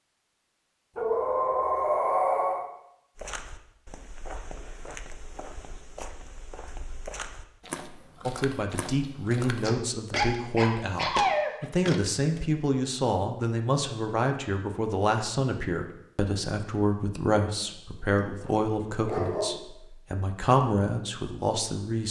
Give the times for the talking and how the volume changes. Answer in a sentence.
The talking can be heard from 8.2 to 22.0 s, at a steady volume.